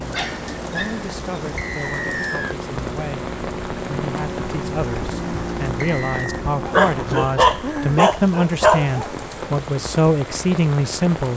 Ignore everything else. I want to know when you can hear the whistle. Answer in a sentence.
You can hear the whistle from 1.6 to 2.5 s and from 5.8 to 6.4 s.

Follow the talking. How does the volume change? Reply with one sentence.
The loudness of the talking goes up.